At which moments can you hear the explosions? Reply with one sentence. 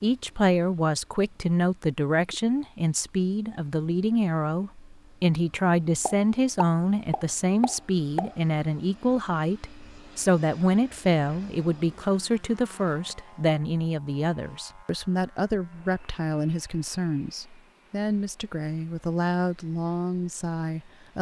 You can hear the explosions from 6.0 to 8.3 s.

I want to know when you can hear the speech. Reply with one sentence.
You can hear the speech from 0.0 to 21.1 s.